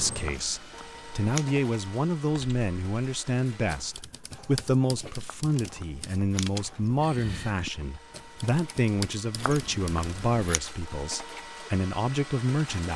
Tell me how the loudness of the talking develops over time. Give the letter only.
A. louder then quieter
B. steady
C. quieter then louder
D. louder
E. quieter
B.